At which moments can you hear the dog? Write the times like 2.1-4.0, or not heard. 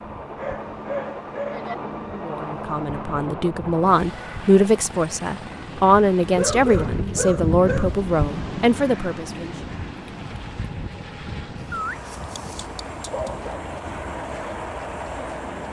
0.3-1.8, 6.3-8.0, 11.7-13.7.